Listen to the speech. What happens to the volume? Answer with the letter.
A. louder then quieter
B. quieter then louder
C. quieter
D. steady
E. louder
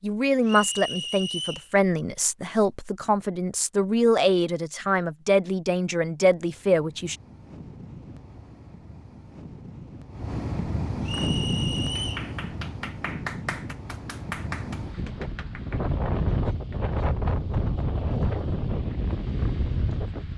D.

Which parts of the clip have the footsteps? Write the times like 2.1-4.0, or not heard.
not heard.